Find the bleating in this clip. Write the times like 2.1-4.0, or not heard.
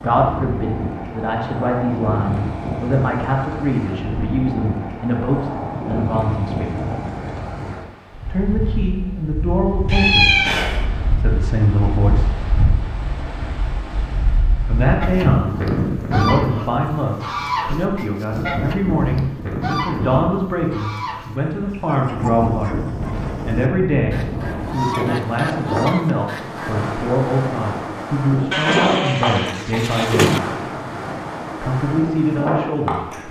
28.5-30.4.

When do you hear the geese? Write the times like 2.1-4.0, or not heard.
15.0-26.7.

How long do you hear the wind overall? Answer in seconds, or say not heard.
33 s.